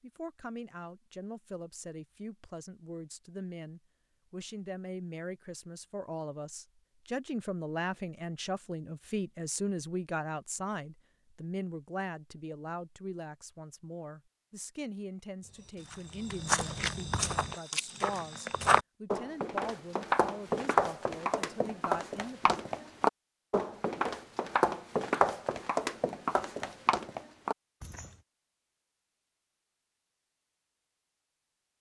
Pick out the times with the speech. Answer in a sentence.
You can hear the speech from 0.0 to 22.6 s.